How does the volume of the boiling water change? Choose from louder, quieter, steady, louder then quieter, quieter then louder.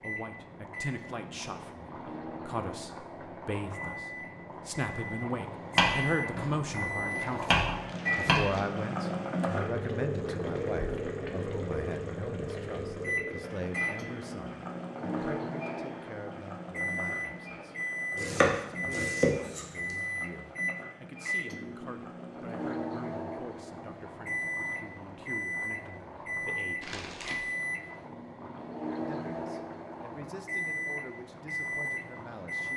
louder then quieter.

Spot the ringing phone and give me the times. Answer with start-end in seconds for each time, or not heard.
not heard.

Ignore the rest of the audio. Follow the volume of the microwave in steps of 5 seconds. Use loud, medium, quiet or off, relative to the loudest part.
medium, loud, medium, loud, loud, loud, loud.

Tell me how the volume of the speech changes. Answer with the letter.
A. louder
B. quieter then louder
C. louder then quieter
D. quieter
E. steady
D.